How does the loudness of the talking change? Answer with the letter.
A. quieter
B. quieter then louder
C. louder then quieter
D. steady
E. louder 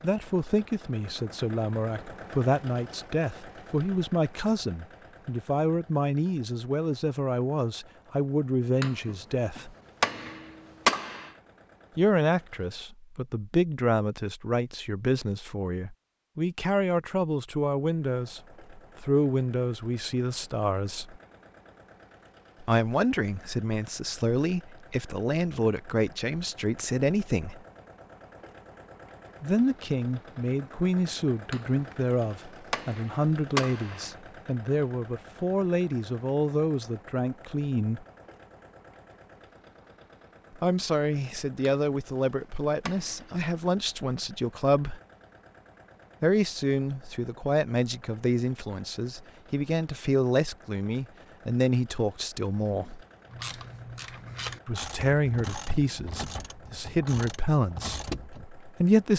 D.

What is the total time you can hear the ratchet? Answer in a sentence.
You can hear the ratchet for 5 seconds altogether.